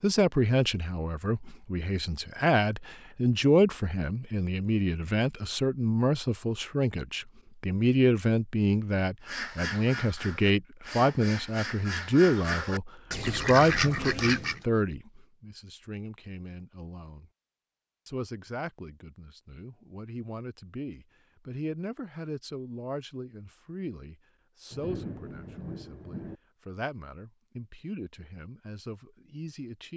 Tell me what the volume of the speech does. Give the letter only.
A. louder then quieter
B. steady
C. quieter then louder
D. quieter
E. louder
D.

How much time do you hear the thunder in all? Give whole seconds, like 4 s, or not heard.
2 s.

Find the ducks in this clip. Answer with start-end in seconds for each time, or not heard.
9.2-14.6.